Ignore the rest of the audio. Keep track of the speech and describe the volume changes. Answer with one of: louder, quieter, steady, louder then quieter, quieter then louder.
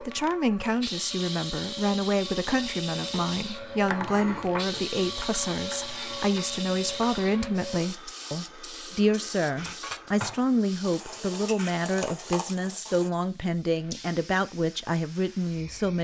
steady.